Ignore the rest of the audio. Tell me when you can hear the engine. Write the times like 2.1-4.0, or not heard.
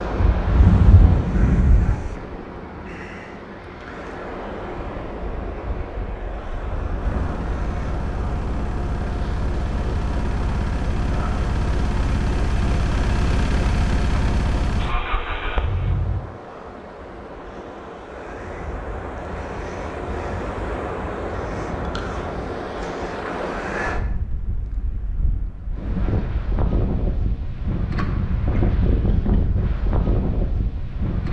7.0-16.2.